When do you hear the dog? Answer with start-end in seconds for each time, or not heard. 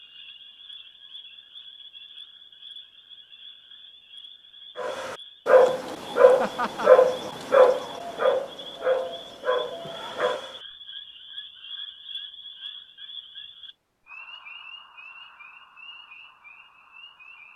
4.8-10.6.